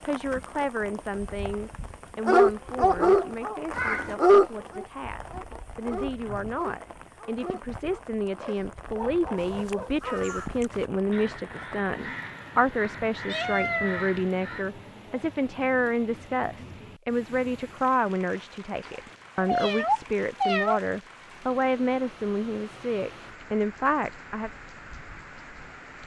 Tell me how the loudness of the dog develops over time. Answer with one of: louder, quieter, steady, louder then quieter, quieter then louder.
quieter.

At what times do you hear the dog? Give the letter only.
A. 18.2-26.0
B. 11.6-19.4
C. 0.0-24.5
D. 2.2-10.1
D.